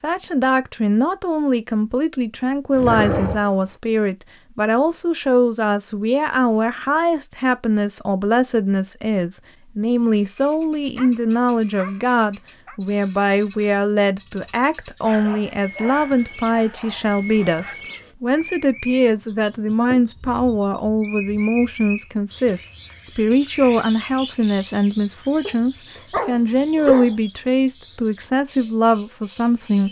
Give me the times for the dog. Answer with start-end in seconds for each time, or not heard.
2.7-3.8, 10.9-12.8, 15.0-17.8, 25.4-27.1.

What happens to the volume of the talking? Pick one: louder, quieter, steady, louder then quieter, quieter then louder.
steady.